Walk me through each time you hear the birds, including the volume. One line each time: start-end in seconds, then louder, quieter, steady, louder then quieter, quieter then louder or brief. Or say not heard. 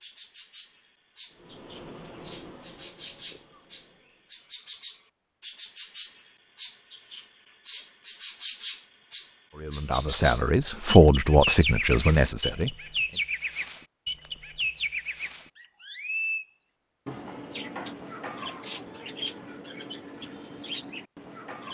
0.0-21.7 louder then quieter.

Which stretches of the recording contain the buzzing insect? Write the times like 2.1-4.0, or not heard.
1.3-4.3.